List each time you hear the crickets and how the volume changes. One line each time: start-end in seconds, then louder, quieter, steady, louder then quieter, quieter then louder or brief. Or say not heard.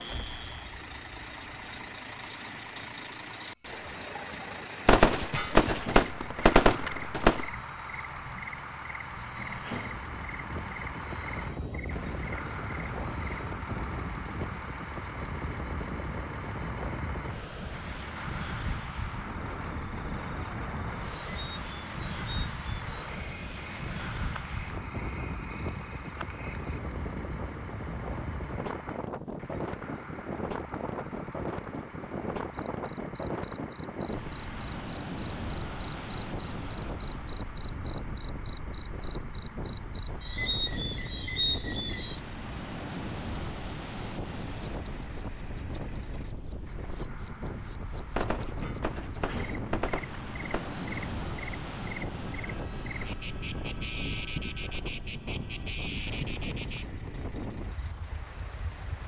0.0-59.0 quieter then louder.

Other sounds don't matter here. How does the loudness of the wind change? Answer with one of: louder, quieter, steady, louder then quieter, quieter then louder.
steady.